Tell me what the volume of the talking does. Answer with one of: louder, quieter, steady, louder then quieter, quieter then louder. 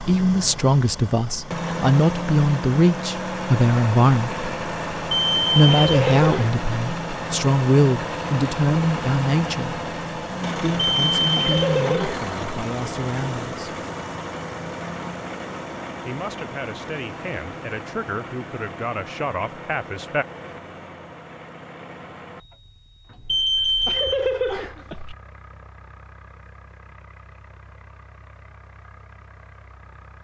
quieter.